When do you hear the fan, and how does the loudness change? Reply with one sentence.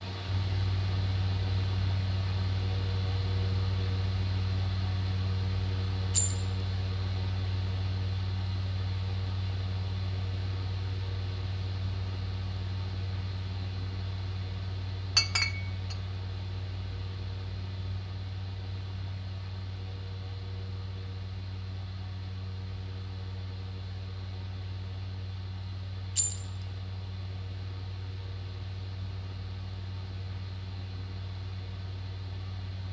You can hear the fan from 0.0 to 32.8 s, getting quieter.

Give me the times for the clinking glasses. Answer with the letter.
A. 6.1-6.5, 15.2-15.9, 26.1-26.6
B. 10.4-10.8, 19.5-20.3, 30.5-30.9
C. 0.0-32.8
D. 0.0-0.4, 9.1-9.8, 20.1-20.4
A.